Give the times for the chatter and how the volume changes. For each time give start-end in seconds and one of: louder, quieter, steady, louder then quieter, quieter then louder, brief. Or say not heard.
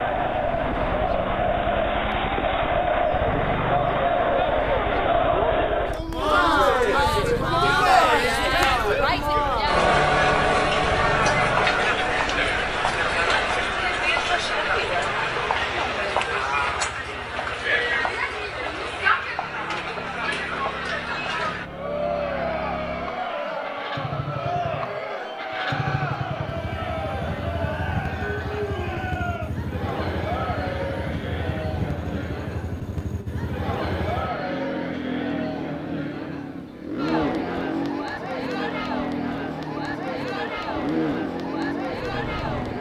0.0-42.7 quieter.